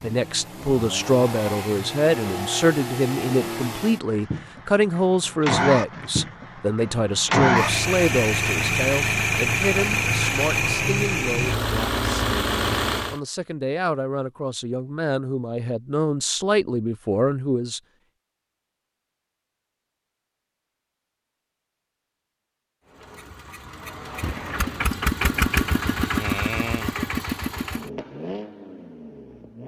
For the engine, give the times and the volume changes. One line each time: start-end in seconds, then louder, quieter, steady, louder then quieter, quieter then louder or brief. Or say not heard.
0.0-13.2 louder
22.9-29.6 louder then quieter.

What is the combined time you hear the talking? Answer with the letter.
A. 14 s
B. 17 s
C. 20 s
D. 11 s
B.